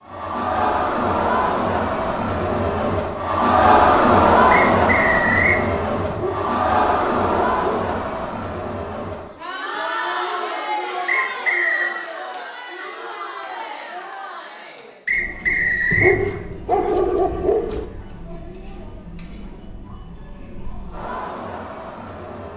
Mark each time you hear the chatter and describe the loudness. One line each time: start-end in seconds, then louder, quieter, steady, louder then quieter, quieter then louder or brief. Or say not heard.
0.0-22.5 quieter.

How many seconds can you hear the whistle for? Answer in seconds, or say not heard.
3 s.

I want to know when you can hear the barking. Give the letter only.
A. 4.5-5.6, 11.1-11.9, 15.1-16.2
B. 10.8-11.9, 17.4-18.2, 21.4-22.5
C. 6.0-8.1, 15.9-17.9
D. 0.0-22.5
C.